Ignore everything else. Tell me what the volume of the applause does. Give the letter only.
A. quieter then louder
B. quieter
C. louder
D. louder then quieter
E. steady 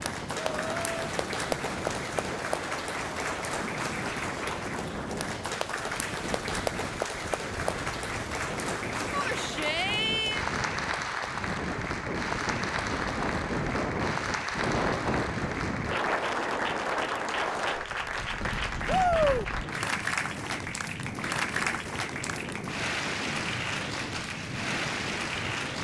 E.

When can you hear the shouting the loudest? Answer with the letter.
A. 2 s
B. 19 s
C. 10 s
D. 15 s
B.